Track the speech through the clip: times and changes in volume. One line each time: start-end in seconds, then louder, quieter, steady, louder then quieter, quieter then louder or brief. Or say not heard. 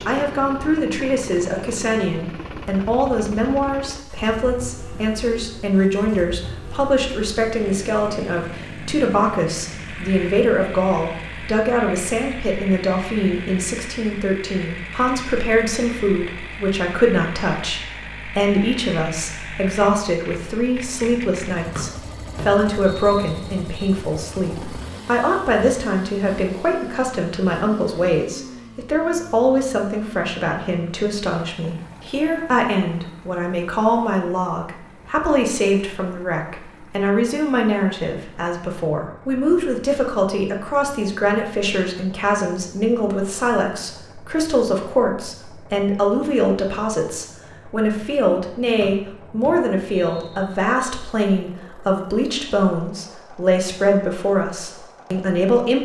0.1-55.8 steady.